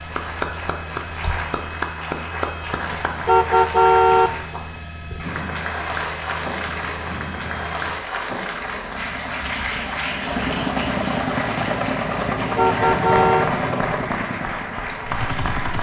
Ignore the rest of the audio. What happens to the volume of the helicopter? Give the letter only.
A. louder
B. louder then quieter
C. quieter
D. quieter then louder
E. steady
A.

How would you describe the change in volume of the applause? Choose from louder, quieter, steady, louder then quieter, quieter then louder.
steady.